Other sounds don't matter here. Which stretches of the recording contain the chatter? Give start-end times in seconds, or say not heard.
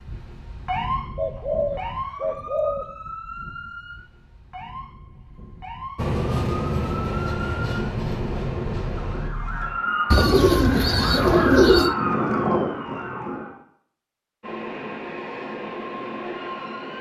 not heard.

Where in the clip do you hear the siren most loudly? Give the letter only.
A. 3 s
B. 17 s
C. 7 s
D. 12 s
D.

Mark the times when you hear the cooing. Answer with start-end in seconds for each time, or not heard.
1.1-2.9, 10.1-11.9.